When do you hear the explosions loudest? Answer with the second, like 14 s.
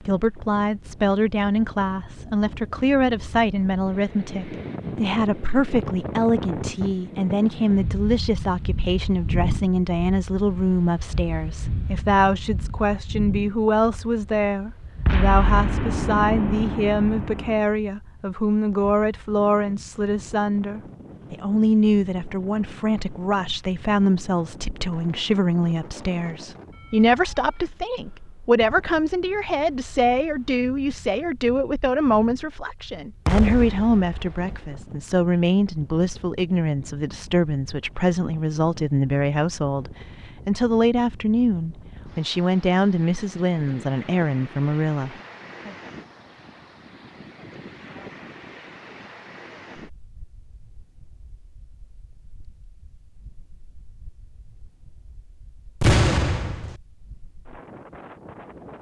56 s.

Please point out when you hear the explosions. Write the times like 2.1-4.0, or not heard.
15.1-17.6, 33.2-34.7, 55.8-56.8.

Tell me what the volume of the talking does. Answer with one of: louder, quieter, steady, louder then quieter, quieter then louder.
steady.